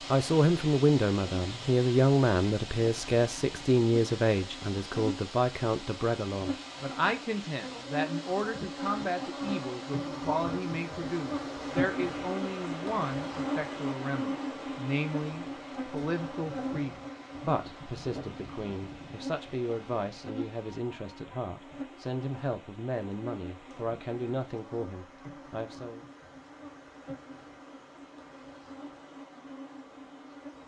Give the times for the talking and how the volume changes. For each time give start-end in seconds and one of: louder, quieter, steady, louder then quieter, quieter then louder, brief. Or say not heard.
0.1-26.1 quieter.